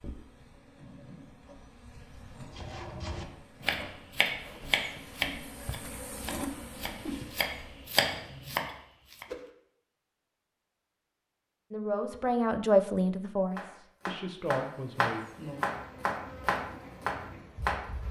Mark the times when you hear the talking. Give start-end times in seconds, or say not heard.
11.7-15.2.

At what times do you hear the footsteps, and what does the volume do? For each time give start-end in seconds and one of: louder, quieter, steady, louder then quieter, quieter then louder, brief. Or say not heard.
not heard.